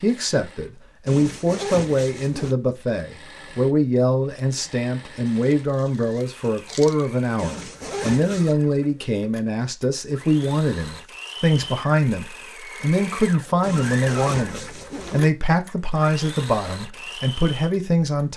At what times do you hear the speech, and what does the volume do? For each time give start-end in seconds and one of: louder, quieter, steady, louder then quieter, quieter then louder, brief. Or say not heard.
0.0-18.3 steady.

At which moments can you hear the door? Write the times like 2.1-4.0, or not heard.
not heard.